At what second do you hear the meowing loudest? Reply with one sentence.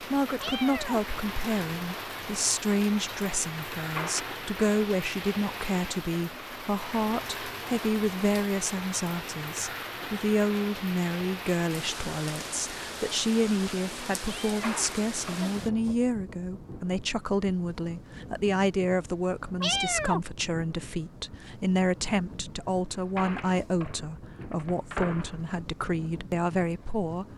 The loudest moment of the meowing is at 20 seconds.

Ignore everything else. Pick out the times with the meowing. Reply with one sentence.
The meowing can be heard from 0.4 to 1.0 s, from 14.2 to 14.8 s and from 19.6 to 20.2 s.